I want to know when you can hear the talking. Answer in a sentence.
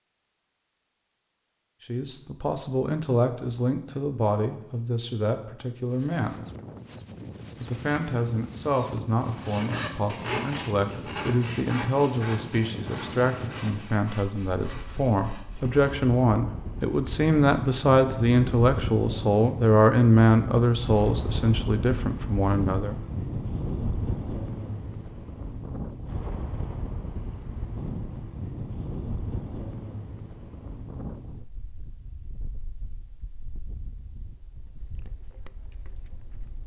The talking can be heard from 1.9 to 6.4 s and from 7.6 to 22.9 s.